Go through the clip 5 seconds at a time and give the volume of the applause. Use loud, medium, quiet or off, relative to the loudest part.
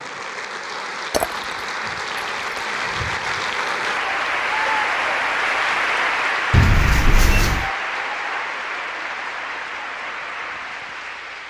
loud, loud, medium.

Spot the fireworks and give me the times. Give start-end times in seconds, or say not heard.
not heard.